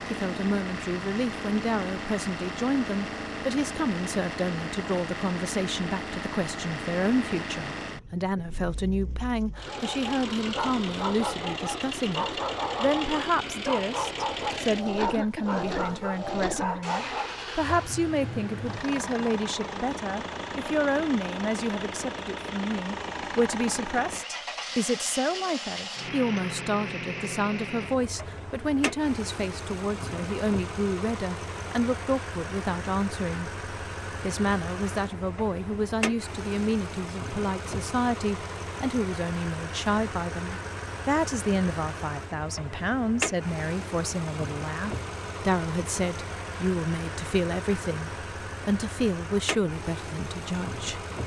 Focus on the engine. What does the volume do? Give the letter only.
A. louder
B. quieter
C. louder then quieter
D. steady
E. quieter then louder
D.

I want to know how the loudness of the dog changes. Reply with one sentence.
The loudness of the dog stays about the same.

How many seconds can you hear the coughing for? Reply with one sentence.
The coughing can be heard for 2 seconds in total.